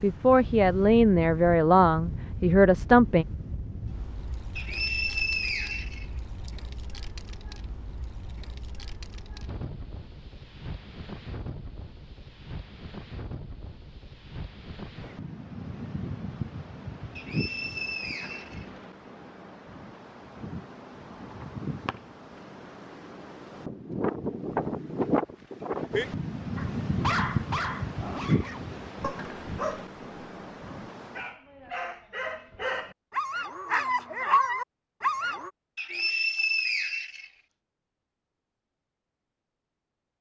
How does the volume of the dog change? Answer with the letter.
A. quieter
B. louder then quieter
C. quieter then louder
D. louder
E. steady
C.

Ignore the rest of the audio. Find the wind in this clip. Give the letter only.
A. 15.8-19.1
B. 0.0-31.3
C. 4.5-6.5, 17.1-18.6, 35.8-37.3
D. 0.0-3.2
B.